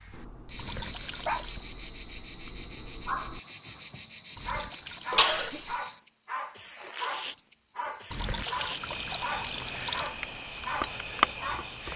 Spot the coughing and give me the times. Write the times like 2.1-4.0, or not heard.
5.1-5.8.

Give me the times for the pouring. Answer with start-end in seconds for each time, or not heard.
0.6-1.6, 4.3-5.8, 8.1-10.1.